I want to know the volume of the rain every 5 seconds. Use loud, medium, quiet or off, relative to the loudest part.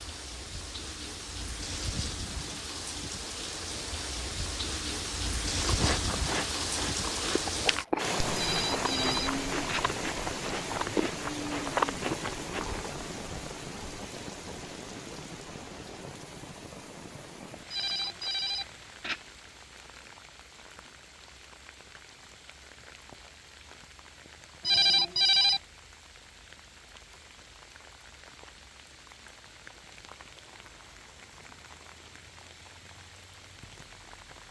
medium, loud, medium, quiet, quiet, quiet, quiet.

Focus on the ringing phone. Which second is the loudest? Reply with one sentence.
The loudest moment of the ringing phone is at 25 seconds.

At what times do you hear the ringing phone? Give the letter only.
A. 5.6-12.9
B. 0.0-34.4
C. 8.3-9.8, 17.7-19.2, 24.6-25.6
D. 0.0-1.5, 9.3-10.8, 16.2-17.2
C.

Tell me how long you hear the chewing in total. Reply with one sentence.
You can hear the chewing for 7 seconds altogether.